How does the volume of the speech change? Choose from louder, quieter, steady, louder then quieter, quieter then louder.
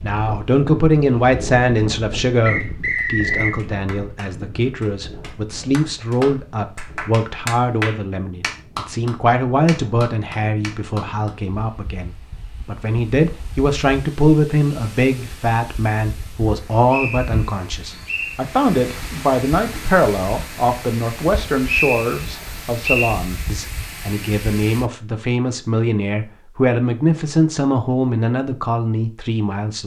steady.